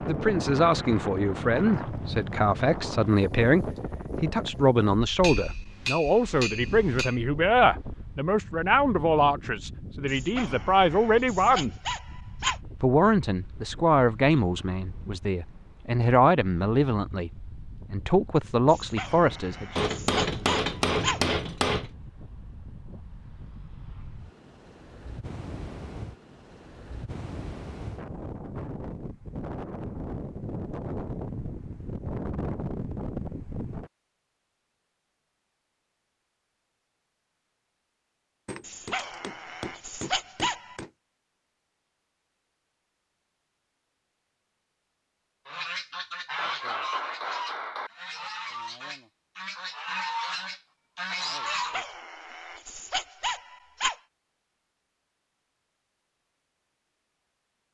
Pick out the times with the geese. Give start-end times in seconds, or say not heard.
45.5-51.9.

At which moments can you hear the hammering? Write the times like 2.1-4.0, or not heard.
5.2-7.2, 19.8-21.9, 38.5-40.9, 46.4-47.9.